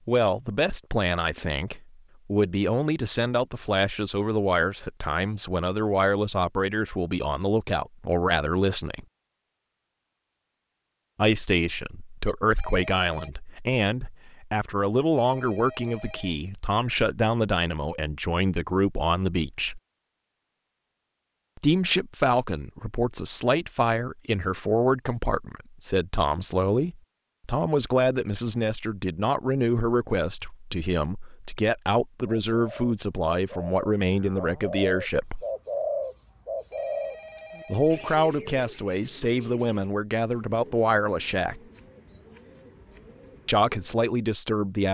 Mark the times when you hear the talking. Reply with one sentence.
The talking can be heard from 0.1 to 9.1 s, from 11.2 to 19.8 s, from 21.6 to 35.5 s, from 37.6 to 41.6 s and from 43.5 to 44.9 s.